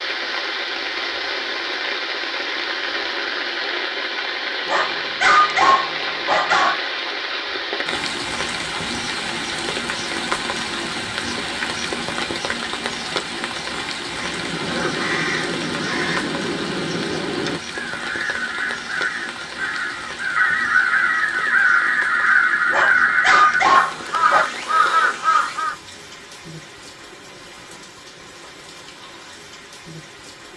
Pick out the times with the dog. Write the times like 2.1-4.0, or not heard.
4.7-6.8, 22.7-24.4.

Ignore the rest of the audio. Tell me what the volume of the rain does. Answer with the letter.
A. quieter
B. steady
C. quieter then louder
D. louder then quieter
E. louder
A.